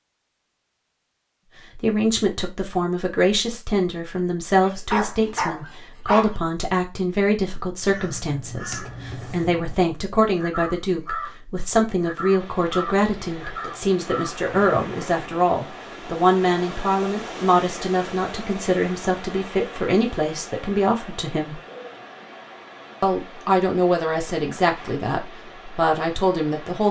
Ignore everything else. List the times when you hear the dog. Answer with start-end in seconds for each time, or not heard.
4.6-6.3.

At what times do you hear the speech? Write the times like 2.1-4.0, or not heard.
1.8-21.6, 23.0-26.8.